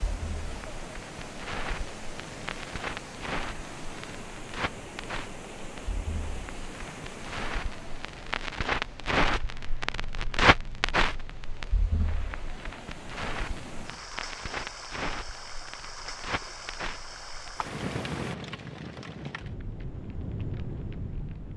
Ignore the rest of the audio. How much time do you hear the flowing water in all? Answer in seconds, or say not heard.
18 s.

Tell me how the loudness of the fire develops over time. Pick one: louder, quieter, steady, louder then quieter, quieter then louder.
louder then quieter.